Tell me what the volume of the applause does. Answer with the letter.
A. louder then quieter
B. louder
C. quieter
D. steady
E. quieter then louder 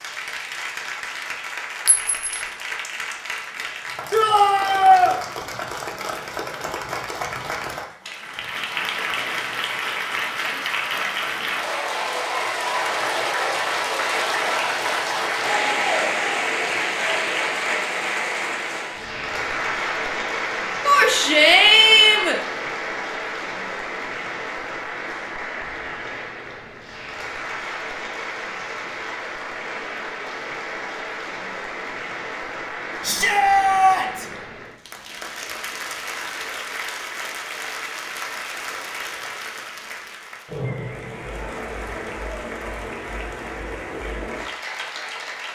A.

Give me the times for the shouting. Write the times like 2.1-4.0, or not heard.
4.1-5.2, 20.9-22.4, 33.0-34.2.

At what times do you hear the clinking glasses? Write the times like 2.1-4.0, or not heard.
1.9-2.5.